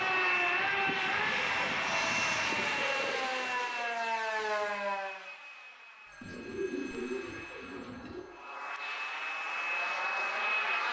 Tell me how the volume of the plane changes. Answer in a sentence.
The loudness of the plane goes down, then up.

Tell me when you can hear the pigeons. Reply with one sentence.
The pigeons can be heard from 1.3 to 3.9 s and from 6.2 to 8.2 s.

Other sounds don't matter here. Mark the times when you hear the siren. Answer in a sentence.
The siren can be heard from 0.0 to 5.2 s.